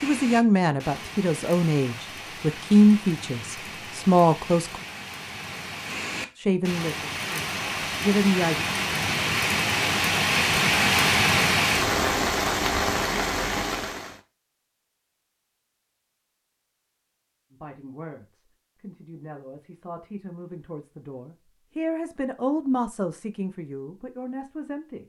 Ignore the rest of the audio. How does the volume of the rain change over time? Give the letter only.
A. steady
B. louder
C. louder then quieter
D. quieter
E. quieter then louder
B.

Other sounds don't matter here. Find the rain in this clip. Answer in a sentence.
The rain can be heard from 0.0 to 14.2 s.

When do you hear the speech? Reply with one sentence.
The speech can be heard from 0.0 to 4.8 s, from 6.3 to 8.7 s and from 17.5 to 25.0 s.